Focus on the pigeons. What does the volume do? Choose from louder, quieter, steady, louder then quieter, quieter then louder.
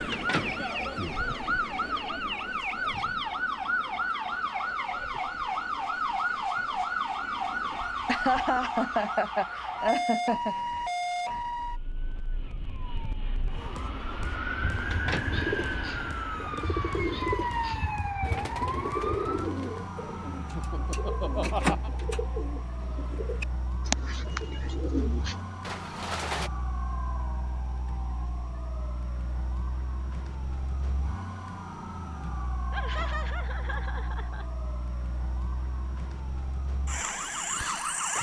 steady.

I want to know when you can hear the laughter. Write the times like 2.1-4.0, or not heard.
8.1-10.6, 20.4-21.9, 32.7-34.5.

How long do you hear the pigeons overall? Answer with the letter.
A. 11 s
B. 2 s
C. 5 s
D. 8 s
A.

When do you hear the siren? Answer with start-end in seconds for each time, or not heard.
0.0-38.1.